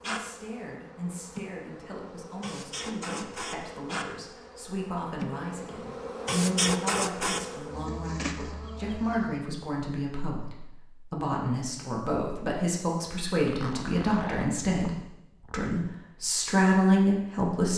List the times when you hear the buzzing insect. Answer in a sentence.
The buzzing insect can be heard from 0.0 to 9.4 s.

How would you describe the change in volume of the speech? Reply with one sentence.
The loudness of the speech goes up.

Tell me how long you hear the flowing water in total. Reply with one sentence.
You can't hear the flowing water here.